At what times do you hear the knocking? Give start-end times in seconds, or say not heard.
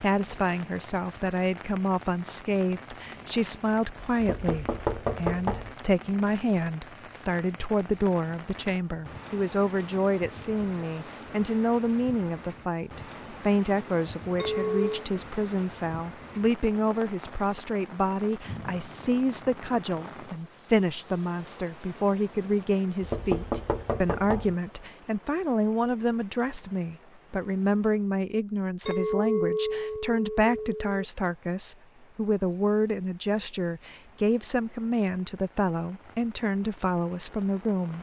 4.2-5.8, 23.0-24.6.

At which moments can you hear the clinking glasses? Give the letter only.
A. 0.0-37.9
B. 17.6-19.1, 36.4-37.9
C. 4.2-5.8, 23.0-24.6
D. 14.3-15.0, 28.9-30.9
D.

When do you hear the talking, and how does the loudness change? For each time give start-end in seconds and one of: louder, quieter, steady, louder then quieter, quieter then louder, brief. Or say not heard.
0.0-37.9 steady.